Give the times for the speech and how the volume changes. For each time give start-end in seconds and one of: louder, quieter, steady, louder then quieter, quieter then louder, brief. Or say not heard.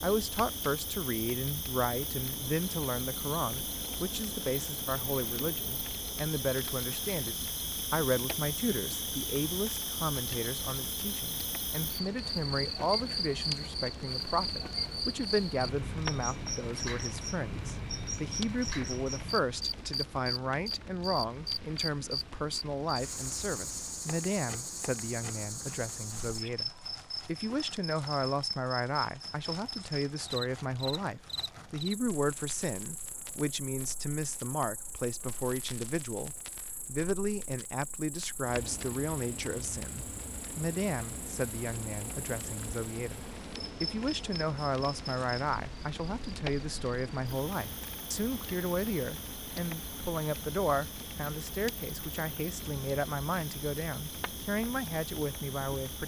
0.0-56.0 steady.